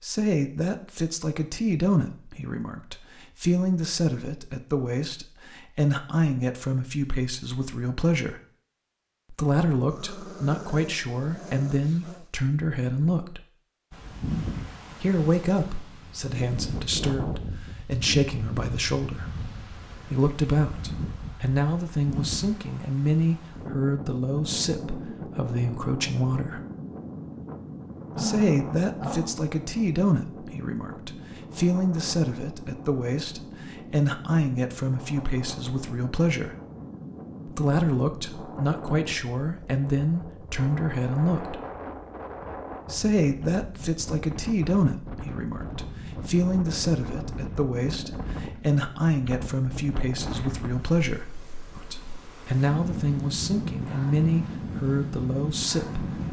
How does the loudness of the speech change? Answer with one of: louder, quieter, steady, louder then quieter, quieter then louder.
steady.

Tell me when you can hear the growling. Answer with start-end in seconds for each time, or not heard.
9.8-12.3, 28.1-29.4, 47.9-49.0.